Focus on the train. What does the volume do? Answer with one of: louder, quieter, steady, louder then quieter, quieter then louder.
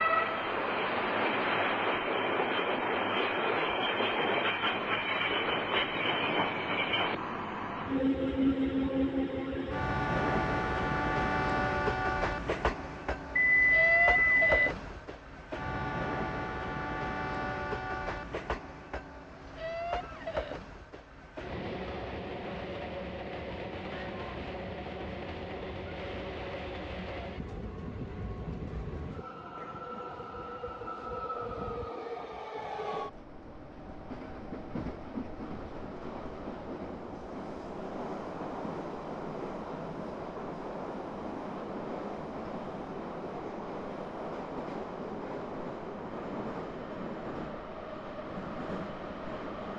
quieter.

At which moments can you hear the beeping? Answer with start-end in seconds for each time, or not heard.
13.3-14.6.